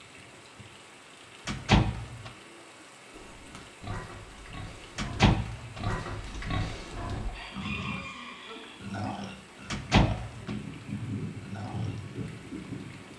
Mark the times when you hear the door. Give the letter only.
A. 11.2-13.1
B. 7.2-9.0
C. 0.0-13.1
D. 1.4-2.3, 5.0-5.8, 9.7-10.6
D.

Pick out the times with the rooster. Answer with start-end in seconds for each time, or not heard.
7.2-9.0.